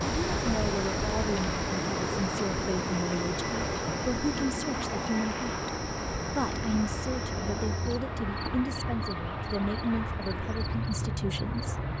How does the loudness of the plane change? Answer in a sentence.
The volume of the plane stays about the same.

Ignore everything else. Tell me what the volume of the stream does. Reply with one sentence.
The volume of the stream goes down.